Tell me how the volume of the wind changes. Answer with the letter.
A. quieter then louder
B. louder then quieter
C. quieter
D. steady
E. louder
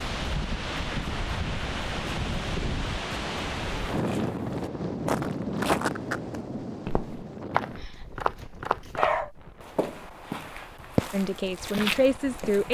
C.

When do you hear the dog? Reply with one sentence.
You can hear the dog from 7.8 to 9.3 s.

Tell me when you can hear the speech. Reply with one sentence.
The speech can be heard from 11.1 to 12.6 s.